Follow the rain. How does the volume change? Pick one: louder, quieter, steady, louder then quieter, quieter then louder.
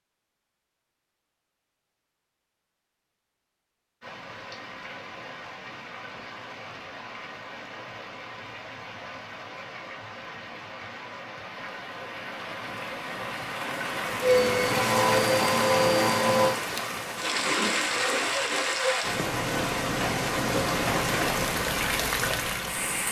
louder.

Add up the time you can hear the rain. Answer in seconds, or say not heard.
19 s.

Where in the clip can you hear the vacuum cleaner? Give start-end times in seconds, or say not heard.
14.2-16.6.